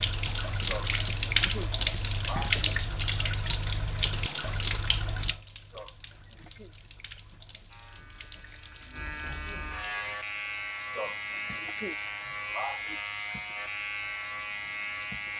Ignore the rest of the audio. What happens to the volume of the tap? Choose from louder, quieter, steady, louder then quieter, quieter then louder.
quieter.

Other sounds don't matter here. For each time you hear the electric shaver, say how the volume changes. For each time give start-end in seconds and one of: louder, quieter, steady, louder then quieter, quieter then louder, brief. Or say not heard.
7.7-15.3 louder.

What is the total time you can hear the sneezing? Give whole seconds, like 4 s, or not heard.
5 s.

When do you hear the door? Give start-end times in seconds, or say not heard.
not heard.